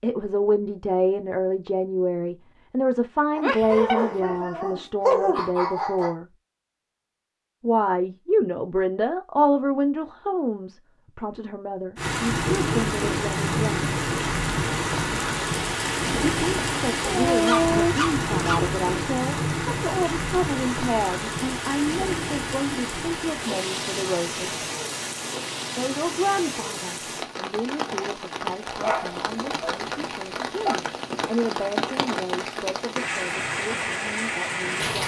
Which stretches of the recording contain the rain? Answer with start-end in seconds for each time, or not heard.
11.9-35.0.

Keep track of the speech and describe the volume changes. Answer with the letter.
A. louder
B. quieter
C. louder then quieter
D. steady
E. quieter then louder
B.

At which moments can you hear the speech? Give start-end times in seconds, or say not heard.
0.0-6.2, 7.6-13.9, 16.2-24.4, 25.8-35.0.